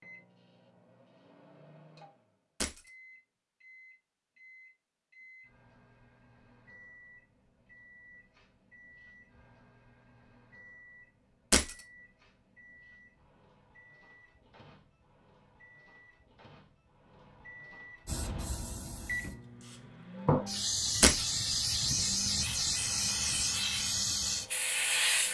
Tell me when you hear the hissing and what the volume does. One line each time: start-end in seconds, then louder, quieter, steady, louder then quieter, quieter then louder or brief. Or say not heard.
18.1-25.3 louder.